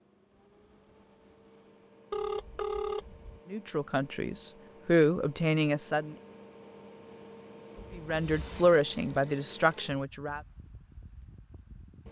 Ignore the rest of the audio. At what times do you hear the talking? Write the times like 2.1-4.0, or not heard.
3.5-6.2, 8.0-10.4.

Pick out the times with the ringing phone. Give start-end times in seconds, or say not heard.
2.1-3.4, 7.8-9.8.